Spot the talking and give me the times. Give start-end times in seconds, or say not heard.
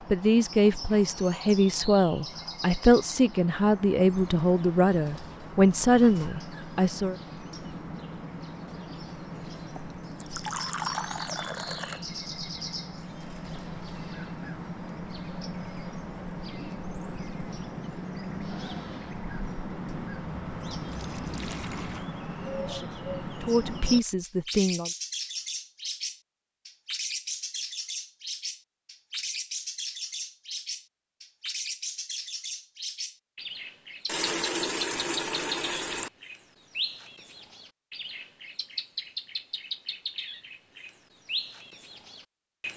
0.1-7.2, 22.6-24.9.